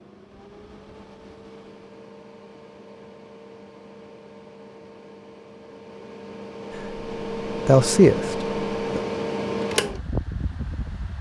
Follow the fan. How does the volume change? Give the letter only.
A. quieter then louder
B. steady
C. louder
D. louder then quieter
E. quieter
C.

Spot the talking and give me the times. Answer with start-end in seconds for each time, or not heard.
7.7-9.0.